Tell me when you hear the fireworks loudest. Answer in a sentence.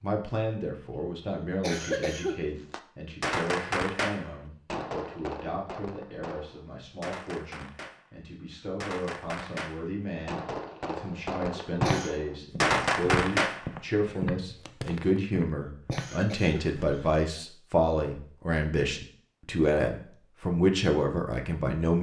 The loudest moment of the fireworks is at 13 seconds.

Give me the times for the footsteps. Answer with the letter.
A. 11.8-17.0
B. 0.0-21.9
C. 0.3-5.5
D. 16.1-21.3
A.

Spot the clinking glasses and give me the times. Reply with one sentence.
The clinking glasses can't be heard in this clip.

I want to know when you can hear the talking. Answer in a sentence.
The talking can be heard from 0.0 to 21.9 s.